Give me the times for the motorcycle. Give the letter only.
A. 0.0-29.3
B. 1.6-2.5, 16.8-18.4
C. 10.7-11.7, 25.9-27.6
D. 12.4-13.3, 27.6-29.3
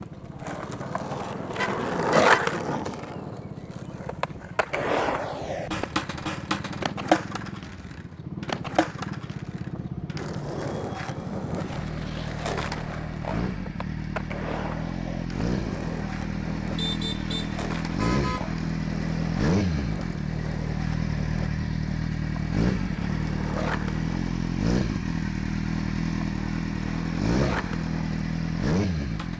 A.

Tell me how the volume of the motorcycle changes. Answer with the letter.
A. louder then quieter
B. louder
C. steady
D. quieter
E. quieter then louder
B.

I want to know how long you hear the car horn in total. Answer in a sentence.
The car horn can be heard for 3 seconds in total.